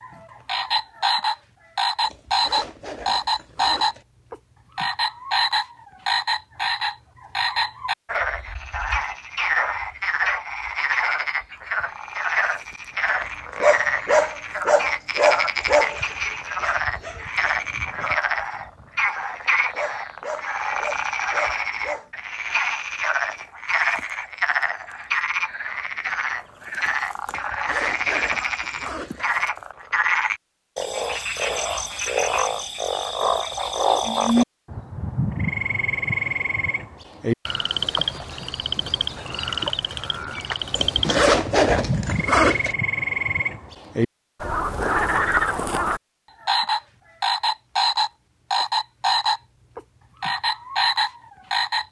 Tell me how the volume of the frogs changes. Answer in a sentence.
The volume of the frogs stays about the same.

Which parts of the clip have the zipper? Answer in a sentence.
You can hear the zipper from 2.0 to 4.0 s, from 27.2 to 29.3 s and from 40.7 to 42.8 s.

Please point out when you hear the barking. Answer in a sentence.
You can hear the barking from 13.2 to 22.1 s.